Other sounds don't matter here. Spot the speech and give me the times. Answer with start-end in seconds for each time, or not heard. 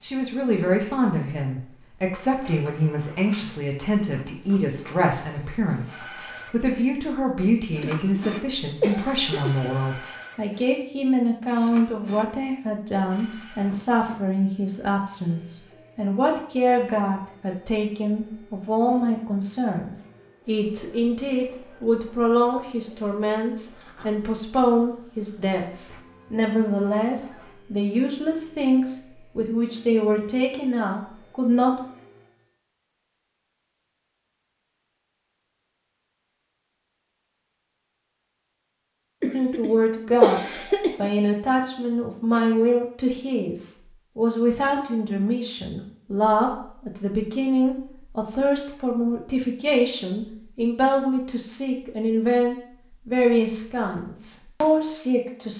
0.0-31.8, 39.3-55.5.